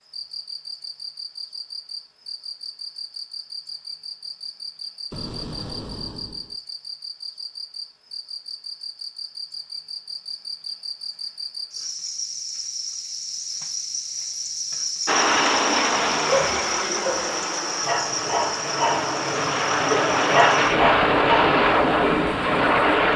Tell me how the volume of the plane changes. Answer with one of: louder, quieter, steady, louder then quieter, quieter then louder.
quieter then louder.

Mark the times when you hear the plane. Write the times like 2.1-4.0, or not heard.
15.1-23.1.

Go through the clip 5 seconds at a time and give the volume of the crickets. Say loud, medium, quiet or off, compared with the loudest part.
medium, medium, loud, loud, medium.